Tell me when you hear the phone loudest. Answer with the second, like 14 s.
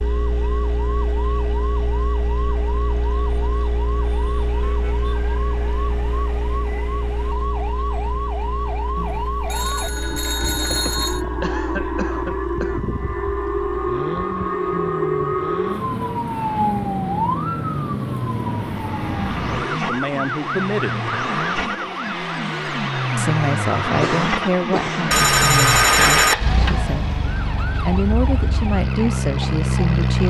26 s.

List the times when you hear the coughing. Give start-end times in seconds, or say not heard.
10.7-12.8, 24.0-25.1.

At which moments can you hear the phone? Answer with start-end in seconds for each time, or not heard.
8.9-11.2, 25.1-26.4.